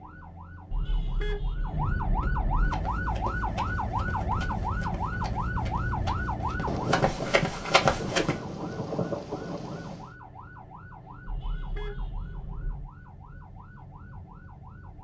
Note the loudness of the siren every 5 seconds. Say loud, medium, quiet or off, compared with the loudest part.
loud, loud, quiet.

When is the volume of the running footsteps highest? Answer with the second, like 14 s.
8 s.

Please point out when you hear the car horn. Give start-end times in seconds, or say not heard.
0.7-2.7, 11.2-12.9.